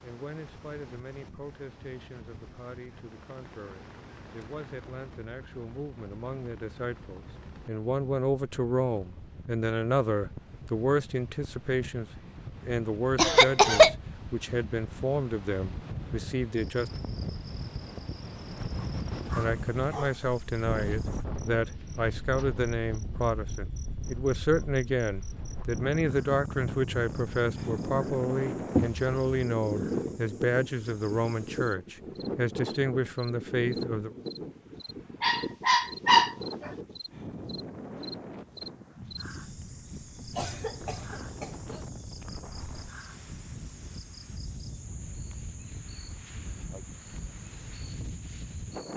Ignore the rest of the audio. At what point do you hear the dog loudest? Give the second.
36 s.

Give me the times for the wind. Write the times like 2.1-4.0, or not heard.
0.0-48.9.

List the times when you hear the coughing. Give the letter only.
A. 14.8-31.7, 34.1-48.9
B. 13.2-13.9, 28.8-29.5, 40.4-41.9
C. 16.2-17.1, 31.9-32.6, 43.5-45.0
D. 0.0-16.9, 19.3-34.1
B.